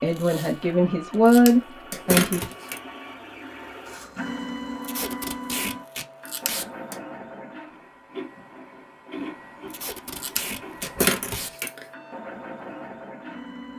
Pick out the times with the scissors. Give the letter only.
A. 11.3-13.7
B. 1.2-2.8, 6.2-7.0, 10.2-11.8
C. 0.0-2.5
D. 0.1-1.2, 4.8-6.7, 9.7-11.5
B.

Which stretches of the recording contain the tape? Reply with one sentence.
The tape can be heard from 0.1 to 1.2 s, from 4.8 to 6.7 s and from 9.7 to 11.5 s.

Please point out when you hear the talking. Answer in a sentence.
You can hear the talking from 0.0 to 2.5 s.